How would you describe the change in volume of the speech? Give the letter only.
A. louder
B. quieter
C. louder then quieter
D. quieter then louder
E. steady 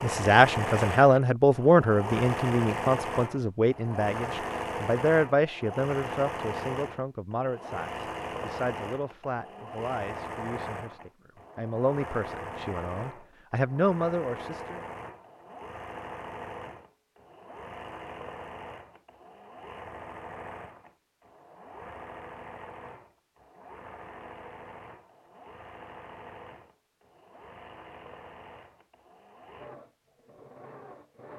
D.